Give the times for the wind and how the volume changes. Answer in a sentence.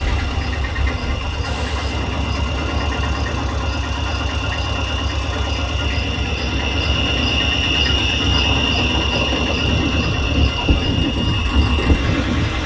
The wind can be heard from 0.0 to 12.6 s, getting louder.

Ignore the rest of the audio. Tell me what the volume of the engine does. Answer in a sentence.
The volume of the engine stays about the same.